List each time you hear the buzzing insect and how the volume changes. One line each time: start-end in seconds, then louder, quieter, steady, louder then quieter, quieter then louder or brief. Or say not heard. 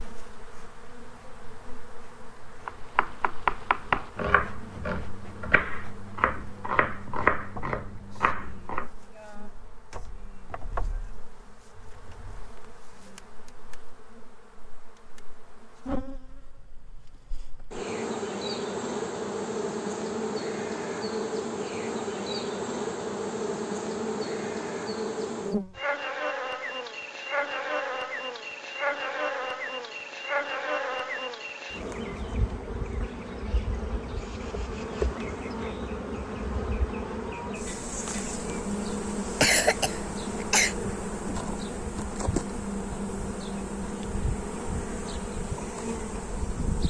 0.0-46.8 louder.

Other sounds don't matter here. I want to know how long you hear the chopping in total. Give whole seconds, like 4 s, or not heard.
6 s.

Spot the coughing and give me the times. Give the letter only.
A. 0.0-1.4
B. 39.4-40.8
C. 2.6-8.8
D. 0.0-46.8
B.